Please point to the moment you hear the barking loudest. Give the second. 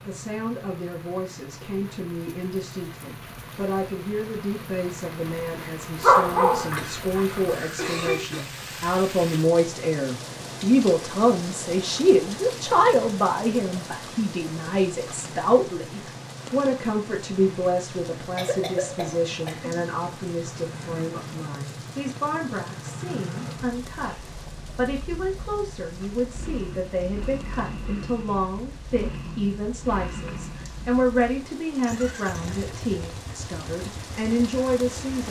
6 s.